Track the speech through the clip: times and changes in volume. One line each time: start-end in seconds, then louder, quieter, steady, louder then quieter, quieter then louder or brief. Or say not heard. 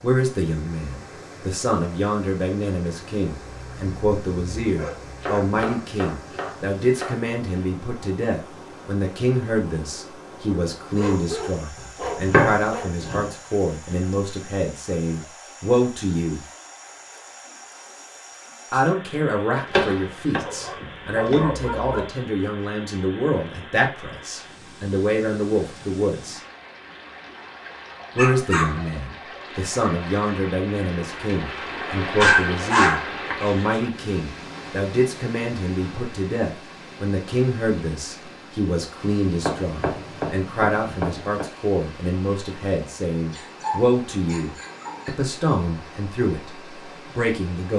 0.0-16.4 steady
18.7-26.4 steady
28.1-47.7 steady.